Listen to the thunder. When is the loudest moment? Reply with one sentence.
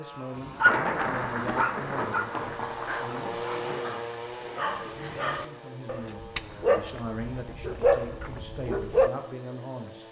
The volume of the thunder peaks at 1 second.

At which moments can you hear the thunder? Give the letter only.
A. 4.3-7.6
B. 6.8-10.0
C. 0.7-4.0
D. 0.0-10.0
C.